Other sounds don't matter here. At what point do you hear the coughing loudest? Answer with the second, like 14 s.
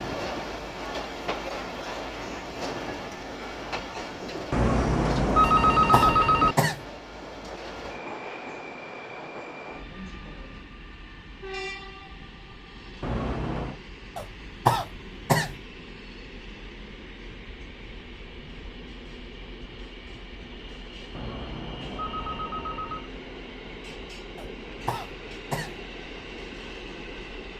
15 s.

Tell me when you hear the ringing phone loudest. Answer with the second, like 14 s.
6 s.